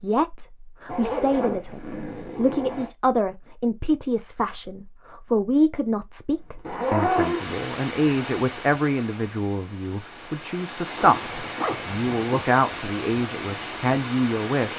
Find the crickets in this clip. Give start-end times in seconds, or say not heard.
not heard.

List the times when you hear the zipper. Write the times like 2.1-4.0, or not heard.
0.8-2.9, 6.5-7.5, 10.9-12.4.